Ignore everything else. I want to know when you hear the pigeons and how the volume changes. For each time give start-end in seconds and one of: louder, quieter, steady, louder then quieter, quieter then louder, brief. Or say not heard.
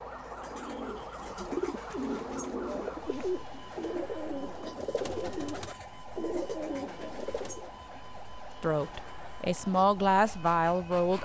0.5-7.7 steady.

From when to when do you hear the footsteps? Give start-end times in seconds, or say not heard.
not heard.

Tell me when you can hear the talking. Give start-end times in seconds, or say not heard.
8.6-11.2.